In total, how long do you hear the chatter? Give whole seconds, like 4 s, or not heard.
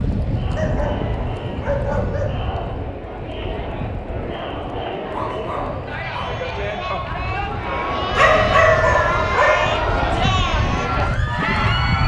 12 s.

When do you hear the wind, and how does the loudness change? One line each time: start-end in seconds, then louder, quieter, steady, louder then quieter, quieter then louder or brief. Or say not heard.
0.0-12.0 quieter then louder.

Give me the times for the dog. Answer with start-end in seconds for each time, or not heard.
0.6-2.3, 5.1-6.5, 8.2-9.7.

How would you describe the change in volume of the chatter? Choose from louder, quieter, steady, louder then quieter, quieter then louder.
louder.